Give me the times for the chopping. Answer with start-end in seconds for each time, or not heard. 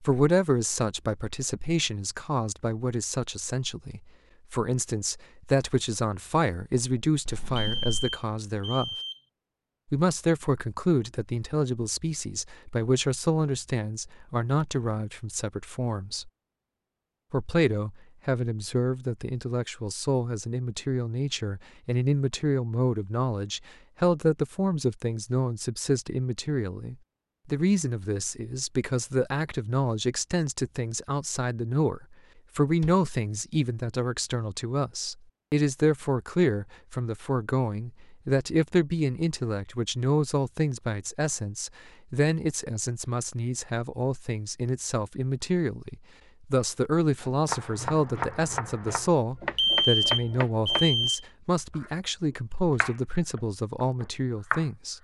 47.2-51.1, 51.7-54.6.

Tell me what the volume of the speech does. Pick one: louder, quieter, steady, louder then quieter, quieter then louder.
steady.